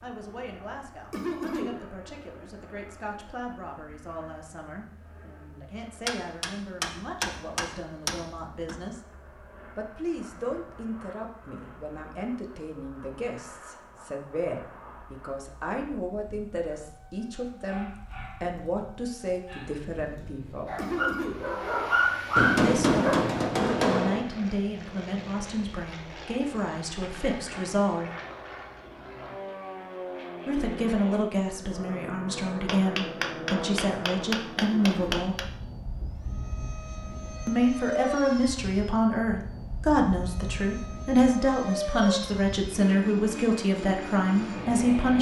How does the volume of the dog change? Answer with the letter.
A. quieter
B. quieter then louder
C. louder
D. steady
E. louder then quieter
B.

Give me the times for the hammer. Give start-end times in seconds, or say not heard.
6.0-8.8, 22.4-24.2, 32.6-35.5.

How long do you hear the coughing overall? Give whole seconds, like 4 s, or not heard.
2 s.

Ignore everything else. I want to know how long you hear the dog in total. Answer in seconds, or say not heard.
7 s.